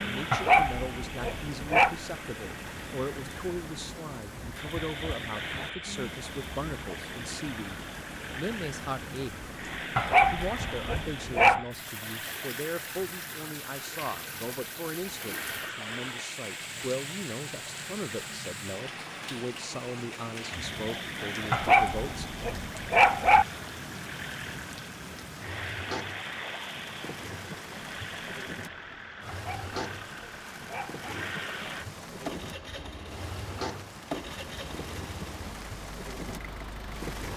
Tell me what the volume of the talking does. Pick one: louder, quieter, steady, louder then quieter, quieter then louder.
steady.